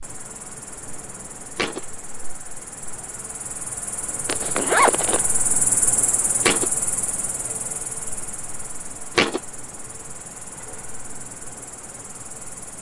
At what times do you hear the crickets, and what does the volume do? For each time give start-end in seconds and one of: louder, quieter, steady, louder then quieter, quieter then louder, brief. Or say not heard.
0.0-12.7 louder then quieter.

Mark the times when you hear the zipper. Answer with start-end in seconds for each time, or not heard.
4.2-5.2.